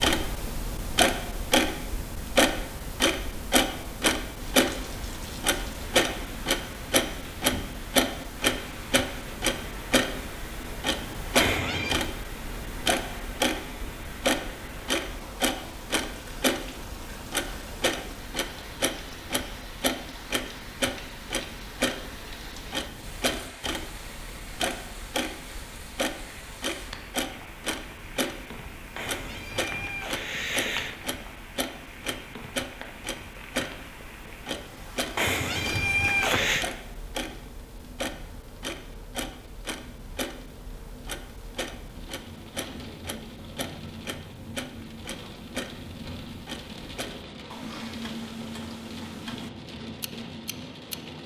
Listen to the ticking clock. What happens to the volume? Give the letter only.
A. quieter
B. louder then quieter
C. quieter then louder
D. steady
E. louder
A.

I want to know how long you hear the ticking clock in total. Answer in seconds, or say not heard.
51 s.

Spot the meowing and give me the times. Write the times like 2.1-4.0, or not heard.
11.3-12.0, 28.9-30.9, 35.1-36.6.